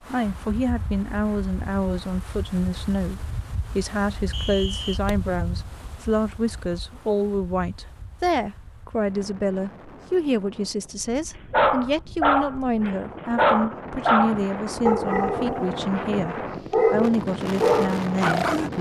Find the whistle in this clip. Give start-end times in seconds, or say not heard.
4.3-5.0.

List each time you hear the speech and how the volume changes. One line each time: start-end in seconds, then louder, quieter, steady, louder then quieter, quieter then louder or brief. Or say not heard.
0.1-18.7 steady.